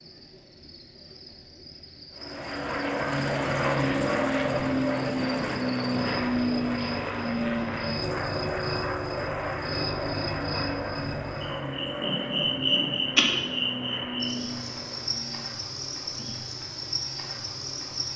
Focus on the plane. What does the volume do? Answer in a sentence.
The loudness of the plane goes down.